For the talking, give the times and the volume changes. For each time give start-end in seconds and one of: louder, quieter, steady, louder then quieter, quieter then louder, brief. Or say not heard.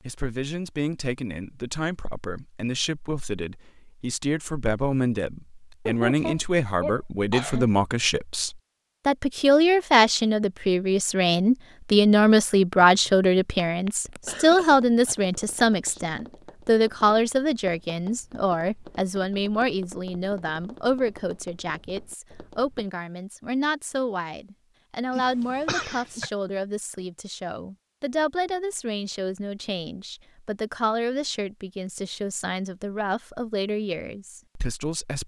0.1-35.2 louder then quieter.